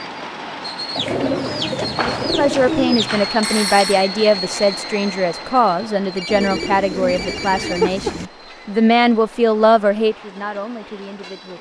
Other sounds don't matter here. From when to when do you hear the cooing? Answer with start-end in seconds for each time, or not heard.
0.9-3.2, 6.2-8.3.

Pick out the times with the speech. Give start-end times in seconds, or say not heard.
1.9-11.5.